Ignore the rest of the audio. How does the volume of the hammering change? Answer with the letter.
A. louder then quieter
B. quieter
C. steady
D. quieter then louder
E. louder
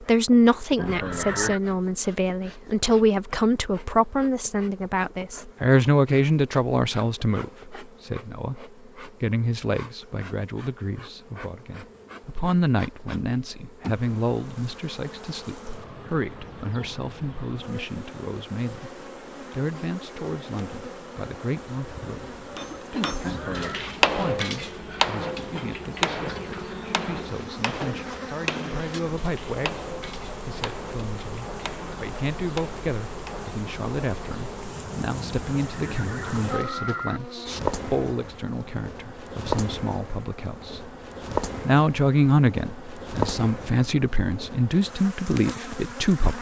B.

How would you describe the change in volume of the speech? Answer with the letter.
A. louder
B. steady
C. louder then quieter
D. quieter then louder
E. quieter
D.